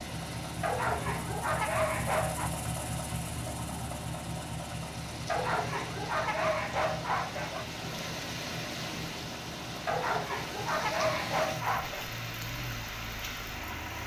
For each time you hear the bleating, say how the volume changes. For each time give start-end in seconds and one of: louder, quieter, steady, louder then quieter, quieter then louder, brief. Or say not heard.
not heard.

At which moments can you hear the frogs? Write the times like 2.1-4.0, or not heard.
not heard.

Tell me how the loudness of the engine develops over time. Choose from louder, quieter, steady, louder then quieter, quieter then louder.
quieter.